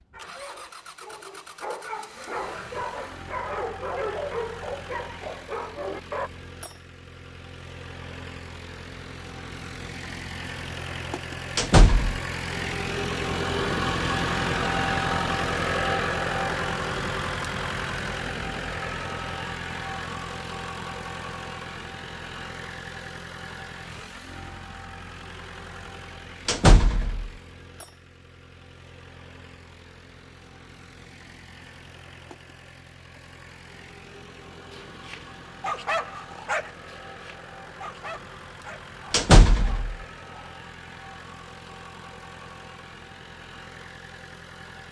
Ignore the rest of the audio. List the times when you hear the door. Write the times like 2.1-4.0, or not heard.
11.6-12.2, 26.4-27.3, 39.1-40.0.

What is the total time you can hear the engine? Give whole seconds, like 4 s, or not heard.
45 s.